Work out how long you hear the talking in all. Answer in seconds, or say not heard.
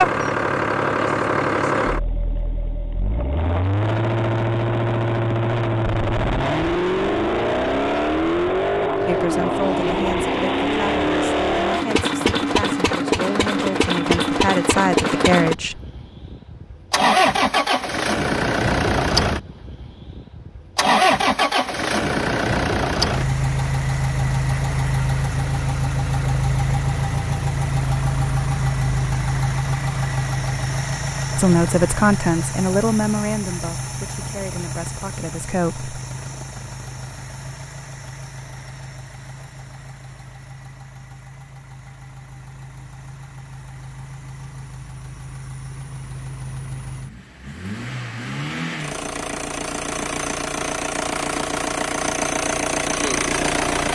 11 s.